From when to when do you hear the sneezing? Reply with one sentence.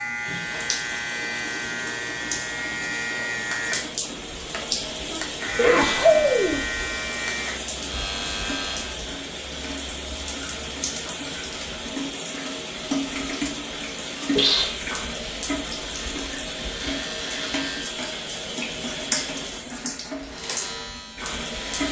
You can hear the sneezing from 5.1 to 6.6 s and from 14.3 to 15.4 s.